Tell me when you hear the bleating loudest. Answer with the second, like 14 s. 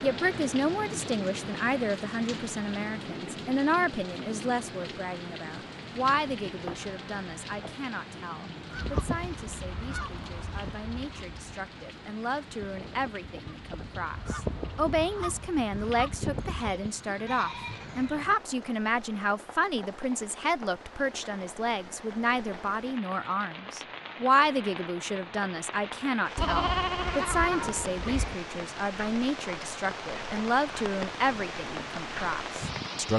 27 s.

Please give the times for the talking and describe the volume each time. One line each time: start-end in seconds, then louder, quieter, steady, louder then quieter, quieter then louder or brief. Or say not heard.
0.0-33.1 quieter then louder.